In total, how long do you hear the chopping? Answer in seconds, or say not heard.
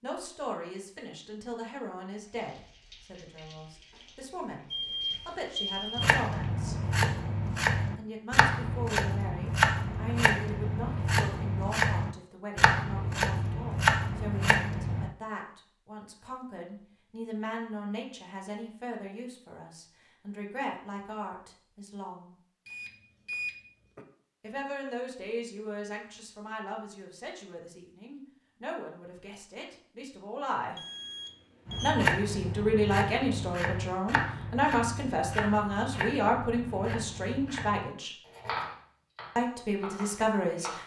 18 s.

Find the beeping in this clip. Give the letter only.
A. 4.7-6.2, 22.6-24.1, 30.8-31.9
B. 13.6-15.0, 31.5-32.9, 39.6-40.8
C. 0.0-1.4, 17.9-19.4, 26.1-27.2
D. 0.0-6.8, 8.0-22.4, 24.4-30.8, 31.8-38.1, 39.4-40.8
A.